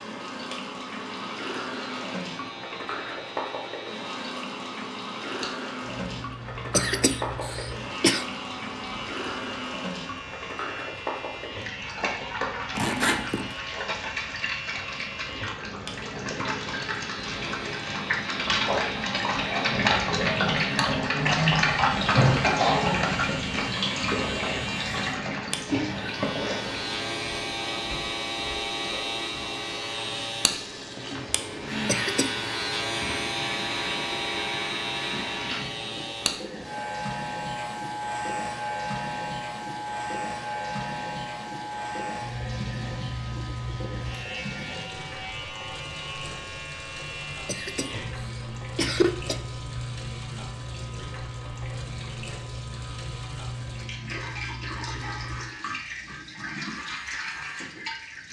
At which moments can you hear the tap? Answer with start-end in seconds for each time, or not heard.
0.0-58.2.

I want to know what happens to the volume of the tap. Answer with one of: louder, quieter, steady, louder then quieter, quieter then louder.
louder then quieter.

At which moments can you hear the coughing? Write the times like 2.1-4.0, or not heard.
6.7-8.2, 31.9-32.4, 47.5-49.4.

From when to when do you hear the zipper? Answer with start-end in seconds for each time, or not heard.
12.8-13.6.